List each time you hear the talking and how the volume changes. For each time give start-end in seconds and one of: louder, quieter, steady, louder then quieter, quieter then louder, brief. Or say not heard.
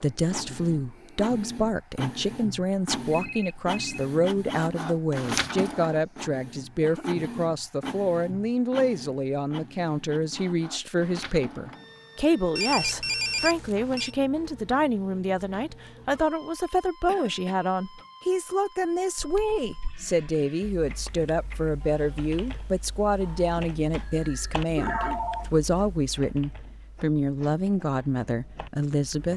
0.0-29.3 steady.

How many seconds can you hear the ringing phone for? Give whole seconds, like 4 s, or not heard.
3 s.